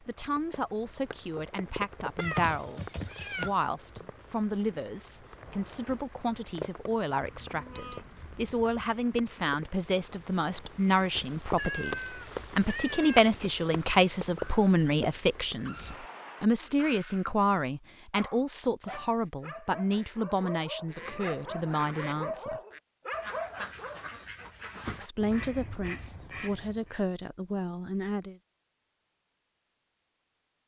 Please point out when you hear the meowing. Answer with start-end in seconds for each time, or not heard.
2.1-3.5, 11.6-13.2, 20.9-22.4.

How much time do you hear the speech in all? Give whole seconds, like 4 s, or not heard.
26 s.